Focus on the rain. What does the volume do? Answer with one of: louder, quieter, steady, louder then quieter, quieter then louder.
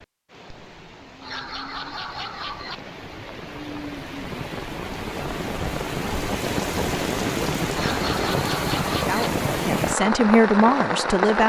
louder.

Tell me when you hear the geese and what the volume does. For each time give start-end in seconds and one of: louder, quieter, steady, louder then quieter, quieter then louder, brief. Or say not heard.
not heard.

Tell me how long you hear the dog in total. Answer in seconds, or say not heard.
3 s.